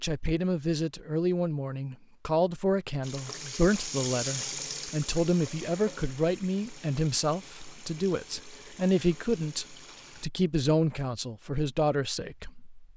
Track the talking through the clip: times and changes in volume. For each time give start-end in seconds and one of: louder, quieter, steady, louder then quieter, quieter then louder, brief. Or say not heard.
0.0-12.8 steady.